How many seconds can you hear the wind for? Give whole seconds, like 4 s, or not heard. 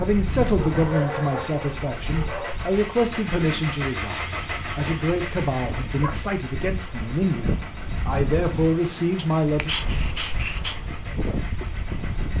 12 s.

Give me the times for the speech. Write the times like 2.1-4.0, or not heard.
0.0-9.7.